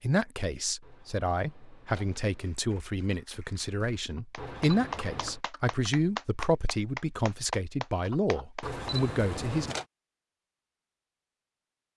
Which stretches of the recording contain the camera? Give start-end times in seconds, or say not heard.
0.8-2.5, 4.3-5.4, 8.6-9.8.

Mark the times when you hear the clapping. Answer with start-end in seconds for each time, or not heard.
2.3-9.0.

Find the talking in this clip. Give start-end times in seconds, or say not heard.
0.0-9.8.